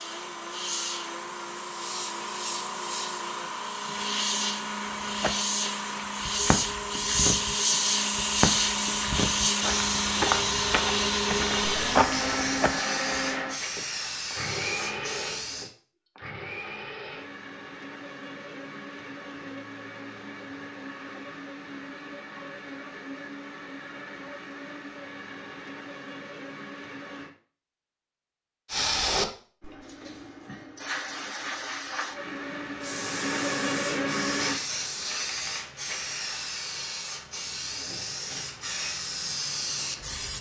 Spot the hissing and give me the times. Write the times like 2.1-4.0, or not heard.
0.0-15.7, 28.6-40.3.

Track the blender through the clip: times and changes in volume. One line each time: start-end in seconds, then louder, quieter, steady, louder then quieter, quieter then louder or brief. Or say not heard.
0.0-27.3 louder then quieter
32.1-34.6 brief.